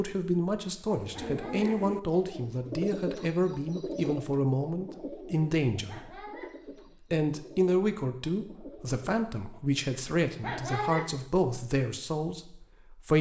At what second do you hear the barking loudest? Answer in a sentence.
The volume of the barking peaks at 11 seconds.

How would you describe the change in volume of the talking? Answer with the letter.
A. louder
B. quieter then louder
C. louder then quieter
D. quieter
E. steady
E.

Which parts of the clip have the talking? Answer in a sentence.
You can hear the talking from 0.0 to 6.3 s and from 7.1 to 13.1 s.